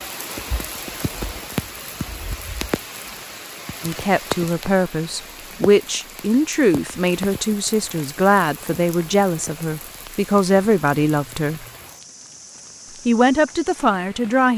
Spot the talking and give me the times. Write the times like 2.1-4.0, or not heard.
3.8-11.7, 13.1-14.5.